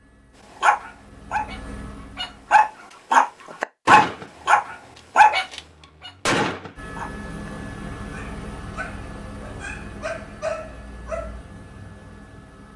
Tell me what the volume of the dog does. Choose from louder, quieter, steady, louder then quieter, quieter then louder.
quieter then louder.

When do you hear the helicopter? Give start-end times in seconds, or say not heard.
0.0-2.7, 6.8-12.7.